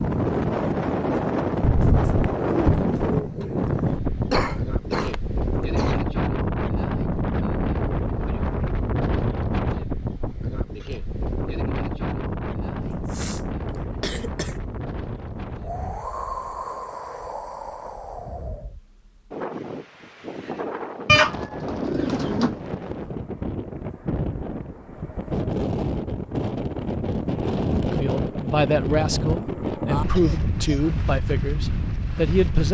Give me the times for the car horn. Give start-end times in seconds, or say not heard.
not heard.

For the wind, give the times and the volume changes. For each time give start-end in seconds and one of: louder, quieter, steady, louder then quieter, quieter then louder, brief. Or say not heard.
0.0-32.6 quieter then louder.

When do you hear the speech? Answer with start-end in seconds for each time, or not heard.
27.9-32.6.